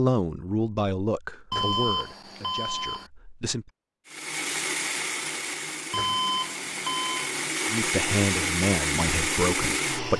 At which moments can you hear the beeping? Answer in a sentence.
You can hear the beeping from 1.5 to 3.1 s and from 5.9 to 7.3 s.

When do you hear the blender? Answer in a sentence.
You can hear the blender from 4.0 to 10.1 s.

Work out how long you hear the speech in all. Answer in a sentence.
You can hear the speech for 6 seconds altogether.